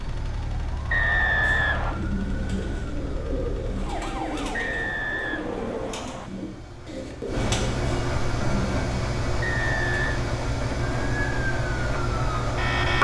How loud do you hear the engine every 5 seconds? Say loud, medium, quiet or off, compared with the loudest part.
quiet, loud, loud.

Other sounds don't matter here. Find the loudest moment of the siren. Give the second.
13 s.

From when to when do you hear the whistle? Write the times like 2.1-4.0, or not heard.
0.9-2.0, 4.5-6.3, 9.4-10.2.